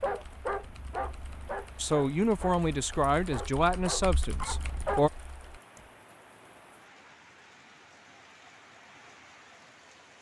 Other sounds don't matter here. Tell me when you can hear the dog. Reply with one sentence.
The dog can be heard from 0.0 to 5.1 s.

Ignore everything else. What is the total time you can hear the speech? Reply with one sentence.
You can hear the speech for 3 seconds altogether.